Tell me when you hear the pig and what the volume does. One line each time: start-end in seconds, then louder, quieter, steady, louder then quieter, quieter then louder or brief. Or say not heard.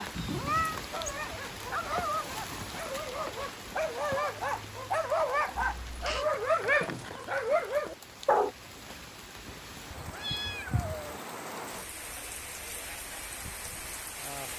not heard.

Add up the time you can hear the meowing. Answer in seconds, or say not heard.
3 s.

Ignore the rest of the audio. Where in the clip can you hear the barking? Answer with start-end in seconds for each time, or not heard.
0.9-8.6.